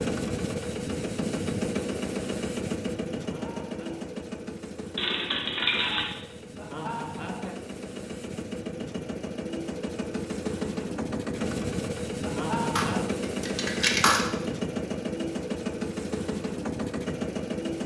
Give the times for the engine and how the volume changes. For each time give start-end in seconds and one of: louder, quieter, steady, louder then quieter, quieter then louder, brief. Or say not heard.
0.0-17.8 quieter then louder.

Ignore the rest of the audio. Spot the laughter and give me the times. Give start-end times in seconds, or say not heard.
3.1-4.1, 6.5-7.6, 12.2-13.1.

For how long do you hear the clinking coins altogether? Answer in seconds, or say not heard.
3 s.